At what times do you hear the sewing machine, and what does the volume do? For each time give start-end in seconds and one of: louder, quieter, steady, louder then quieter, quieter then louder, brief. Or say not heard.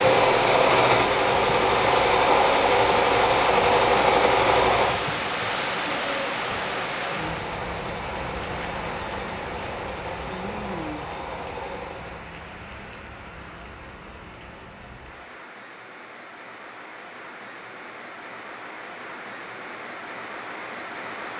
0.0-12.2 quieter.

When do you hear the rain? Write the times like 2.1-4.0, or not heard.
0.0-21.3.